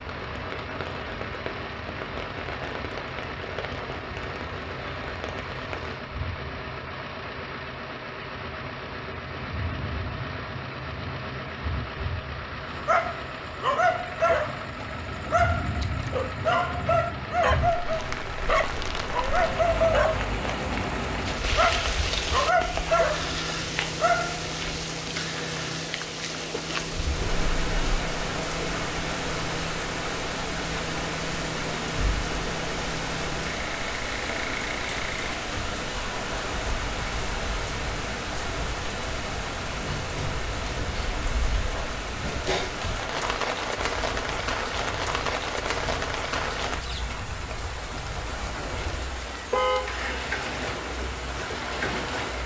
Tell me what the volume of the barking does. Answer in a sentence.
The loudness of the barking stays about the same.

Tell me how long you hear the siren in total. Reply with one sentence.
The siren can't be heard in this clip.